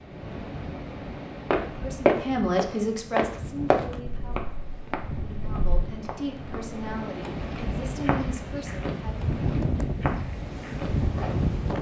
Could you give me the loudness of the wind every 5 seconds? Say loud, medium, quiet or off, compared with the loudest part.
medium, loud, loud.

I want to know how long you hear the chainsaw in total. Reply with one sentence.
The chainsaw can't be heard in this clip.